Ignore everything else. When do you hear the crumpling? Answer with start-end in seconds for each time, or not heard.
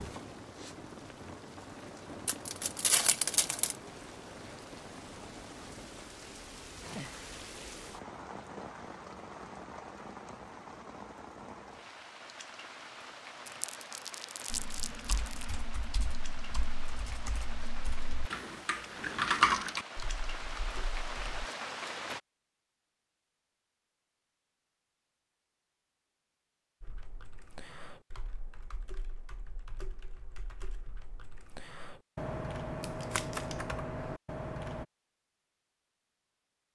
2.2-3.8, 13.4-15.4, 32.8-33.5.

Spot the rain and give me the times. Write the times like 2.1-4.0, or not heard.
0.0-22.2.